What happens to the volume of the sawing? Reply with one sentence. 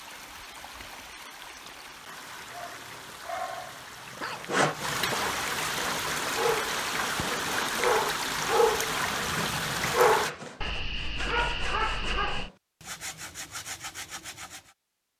The volume of the sawing stays about the same.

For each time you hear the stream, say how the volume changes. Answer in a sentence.
The stream can be heard from 0.0 to 10.3 s, getting louder.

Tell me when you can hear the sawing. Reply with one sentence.
The sawing can be heard from 4.3 to 14.8 s.